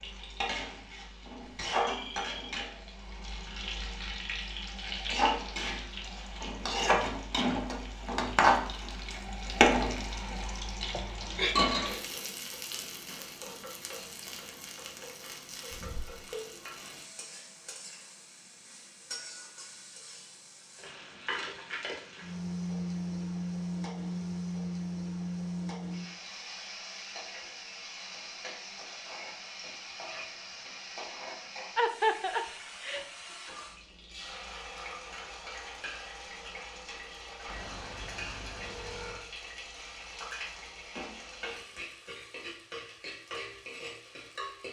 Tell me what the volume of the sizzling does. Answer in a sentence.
The loudness of the sizzling goes down.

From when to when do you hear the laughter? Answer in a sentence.
The laughter can be heard from 10.9 to 11.6 s and from 31.8 to 33.0 s.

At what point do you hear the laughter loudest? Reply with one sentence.
The loudest moment of the laughter is at 32 seconds.